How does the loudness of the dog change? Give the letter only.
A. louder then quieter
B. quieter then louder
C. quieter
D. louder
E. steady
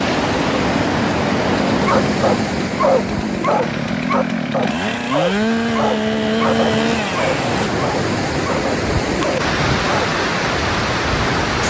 C.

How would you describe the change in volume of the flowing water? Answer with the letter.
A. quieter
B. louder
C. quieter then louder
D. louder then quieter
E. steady
C.